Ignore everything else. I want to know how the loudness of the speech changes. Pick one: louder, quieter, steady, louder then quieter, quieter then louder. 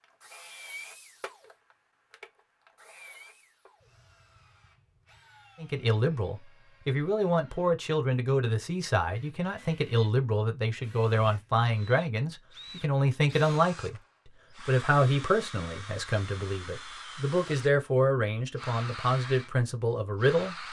steady.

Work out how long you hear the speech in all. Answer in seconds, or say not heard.
14 s.